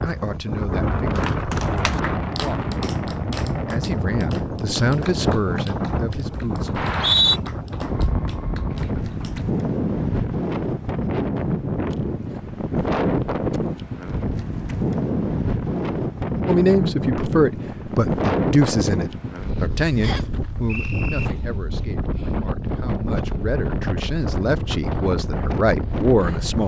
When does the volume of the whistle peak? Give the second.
7 s.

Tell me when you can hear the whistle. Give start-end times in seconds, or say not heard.
6.8-7.4, 20.0-21.3.